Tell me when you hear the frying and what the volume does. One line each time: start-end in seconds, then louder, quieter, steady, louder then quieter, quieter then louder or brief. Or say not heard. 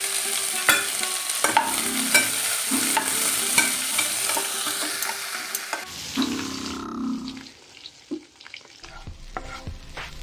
0.0-10.1 quieter.